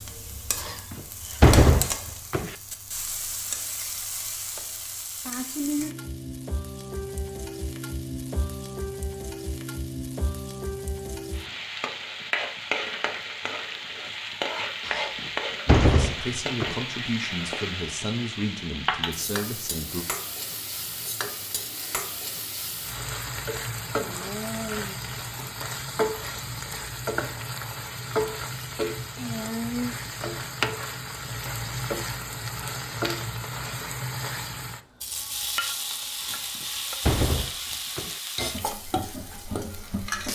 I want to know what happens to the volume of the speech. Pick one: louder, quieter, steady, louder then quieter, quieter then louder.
steady.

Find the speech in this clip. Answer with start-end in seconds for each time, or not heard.
15.7-20.1.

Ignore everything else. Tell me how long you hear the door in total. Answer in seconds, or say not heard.
6 s.